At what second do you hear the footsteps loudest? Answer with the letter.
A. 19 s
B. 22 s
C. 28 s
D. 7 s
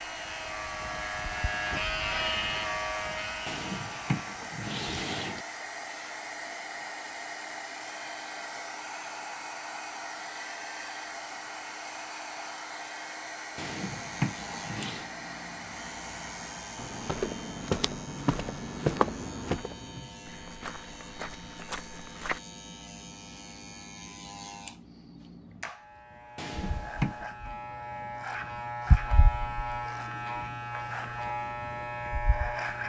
A.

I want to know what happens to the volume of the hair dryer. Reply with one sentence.
The loudness of the hair dryer stays about the same.